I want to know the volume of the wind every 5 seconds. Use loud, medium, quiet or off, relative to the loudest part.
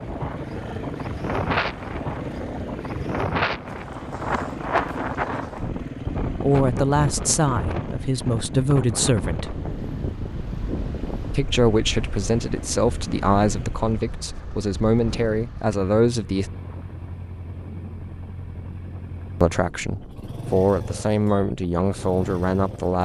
loud, loud, medium, quiet, quiet.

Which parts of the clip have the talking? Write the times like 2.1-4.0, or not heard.
6.4-9.6, 11.3-16.5, 19.4-23.0.